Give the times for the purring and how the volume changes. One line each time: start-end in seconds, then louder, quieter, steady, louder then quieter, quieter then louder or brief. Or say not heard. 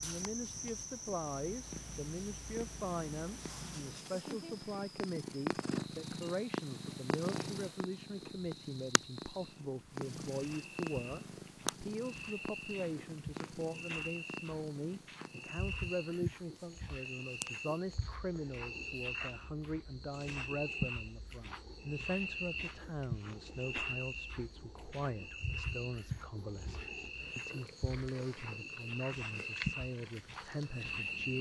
0.0-31.3 quieter then louder.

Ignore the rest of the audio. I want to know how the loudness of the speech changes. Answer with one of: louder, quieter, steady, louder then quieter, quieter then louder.
steady.